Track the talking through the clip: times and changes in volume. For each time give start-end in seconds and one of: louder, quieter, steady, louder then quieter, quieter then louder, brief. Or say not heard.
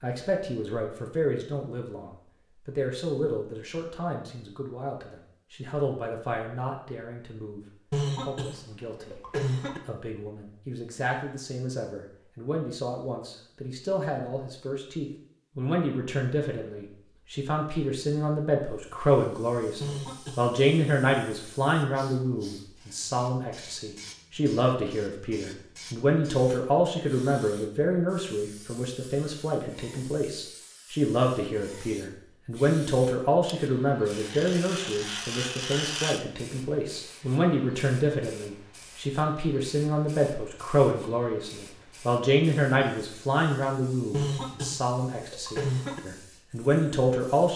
0.0-47.5 louder.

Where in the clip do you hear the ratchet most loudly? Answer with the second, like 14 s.
36 s.